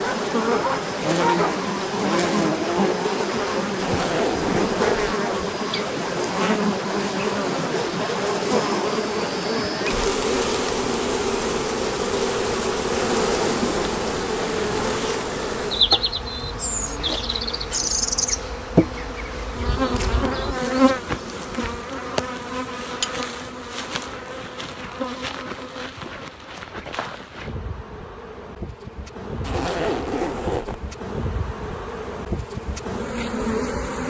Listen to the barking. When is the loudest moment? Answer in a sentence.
The volume of the barking peaks at 1 second.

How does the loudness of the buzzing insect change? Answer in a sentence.
The loudness of the buzzing insect goes down.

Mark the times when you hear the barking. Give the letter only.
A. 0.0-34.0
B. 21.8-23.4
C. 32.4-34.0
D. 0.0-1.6
D.